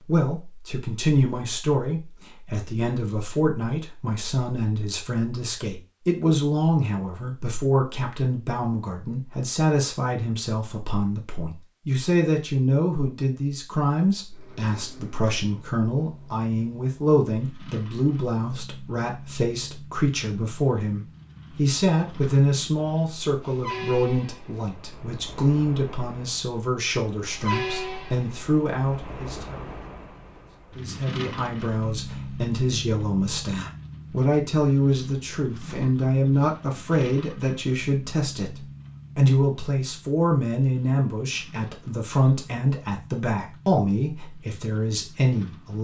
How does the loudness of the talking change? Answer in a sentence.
The loudness of the talking stays about the same.